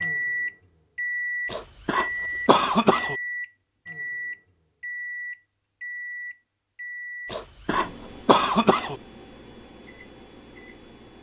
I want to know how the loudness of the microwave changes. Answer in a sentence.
The volume of the microwave goes down.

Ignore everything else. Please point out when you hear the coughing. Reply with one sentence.
You can hear the coughing from 1.5 to 3.1 s and from 7.3 to 8.9 s.